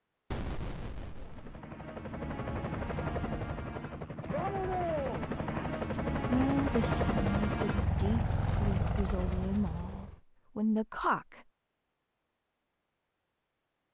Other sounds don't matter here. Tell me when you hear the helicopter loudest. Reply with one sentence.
The loudest moment of the helicopter is at 7 seconds.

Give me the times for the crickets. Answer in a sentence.
You can't hear the crickets here.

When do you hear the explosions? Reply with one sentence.
The explosions can be heard from 0.3 to 1.6 s.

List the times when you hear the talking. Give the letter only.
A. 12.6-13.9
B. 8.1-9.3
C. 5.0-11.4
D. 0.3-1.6
C.